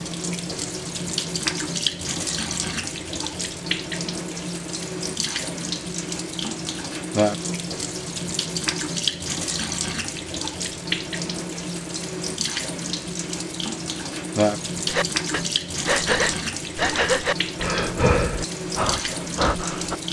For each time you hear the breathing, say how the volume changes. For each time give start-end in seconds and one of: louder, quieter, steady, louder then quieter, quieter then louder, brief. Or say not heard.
14.8-19.9 steady.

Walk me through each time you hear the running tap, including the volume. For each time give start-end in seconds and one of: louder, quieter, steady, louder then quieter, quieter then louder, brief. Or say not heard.
0.0-20.0 steady.